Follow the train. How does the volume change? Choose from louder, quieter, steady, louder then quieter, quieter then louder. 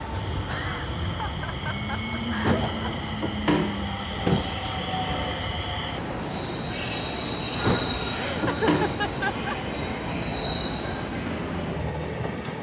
steady.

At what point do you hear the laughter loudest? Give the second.
9 s.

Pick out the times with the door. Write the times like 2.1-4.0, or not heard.
2.4-4.5, 7.6-9.0.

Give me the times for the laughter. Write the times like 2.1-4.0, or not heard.
0.5-2.9, 8.2-9.6.